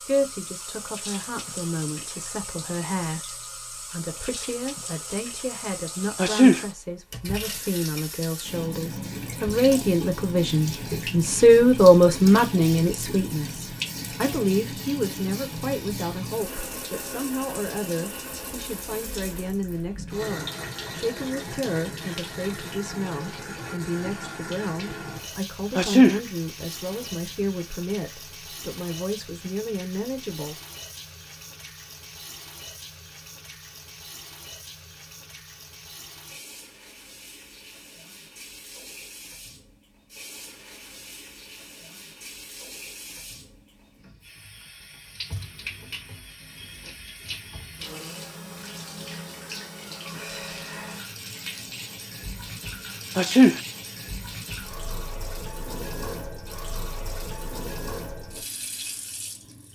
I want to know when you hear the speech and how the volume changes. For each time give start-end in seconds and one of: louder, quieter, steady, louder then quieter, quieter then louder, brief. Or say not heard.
0.0-30.6 louder then quieter.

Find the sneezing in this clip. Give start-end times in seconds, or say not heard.
6.2-6.6, 25.8-26.2, 53.1-53.6.